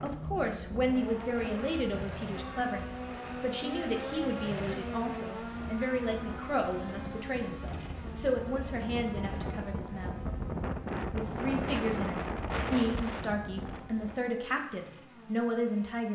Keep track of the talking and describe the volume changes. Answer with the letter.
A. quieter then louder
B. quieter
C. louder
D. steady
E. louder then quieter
D.